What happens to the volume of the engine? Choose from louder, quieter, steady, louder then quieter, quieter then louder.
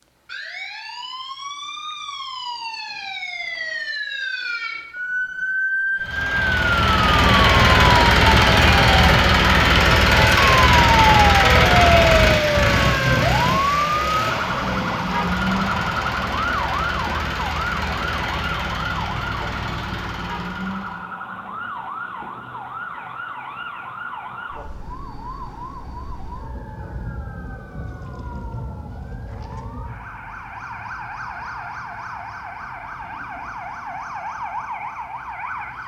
quieter.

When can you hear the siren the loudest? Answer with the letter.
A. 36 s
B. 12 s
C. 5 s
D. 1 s
B.